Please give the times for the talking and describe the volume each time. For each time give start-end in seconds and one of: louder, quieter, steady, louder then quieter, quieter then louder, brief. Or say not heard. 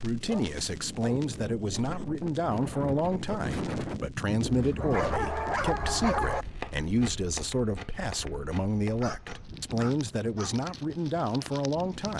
0.0-12.1 steady.